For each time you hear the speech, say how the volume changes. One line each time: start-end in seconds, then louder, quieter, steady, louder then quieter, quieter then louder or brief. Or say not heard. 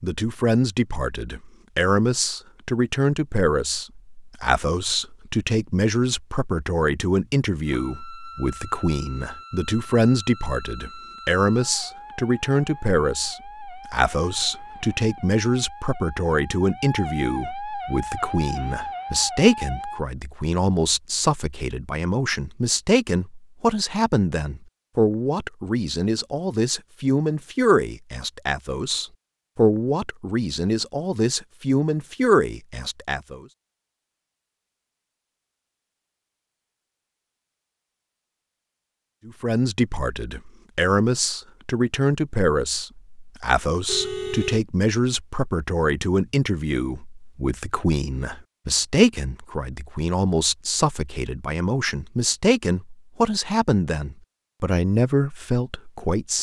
0.0-33.5 steady
39.2-56.3 steady.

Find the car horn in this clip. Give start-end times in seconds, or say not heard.
43.9-44.6.